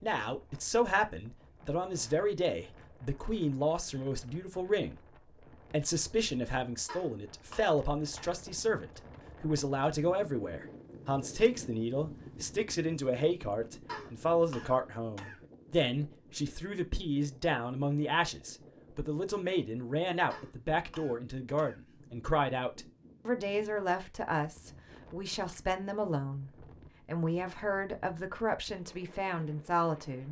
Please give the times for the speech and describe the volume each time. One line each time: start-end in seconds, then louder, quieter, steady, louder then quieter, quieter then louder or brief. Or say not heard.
0.0-30.2 steady.